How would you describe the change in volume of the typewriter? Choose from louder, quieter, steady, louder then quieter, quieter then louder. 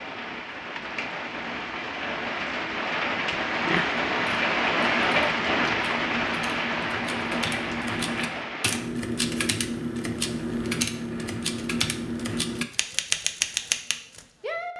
louder.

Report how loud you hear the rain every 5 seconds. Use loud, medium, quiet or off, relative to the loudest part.
loud, loud, off.